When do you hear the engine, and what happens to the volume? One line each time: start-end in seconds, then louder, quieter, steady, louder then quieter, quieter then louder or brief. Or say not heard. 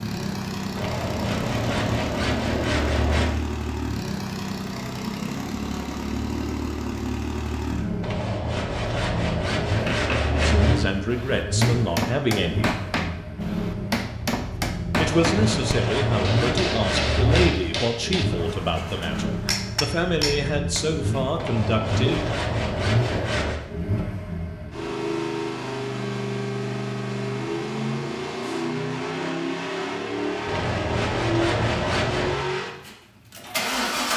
0.0-34.1 steady.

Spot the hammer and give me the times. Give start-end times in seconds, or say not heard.
9.7-20.9.